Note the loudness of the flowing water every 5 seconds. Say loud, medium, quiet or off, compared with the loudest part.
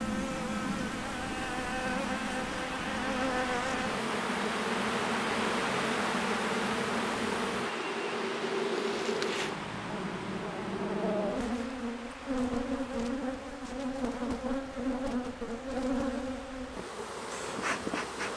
loud, loud, medium, quiet.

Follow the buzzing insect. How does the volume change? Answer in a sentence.
The loudness of the buzzing insect stays about the same.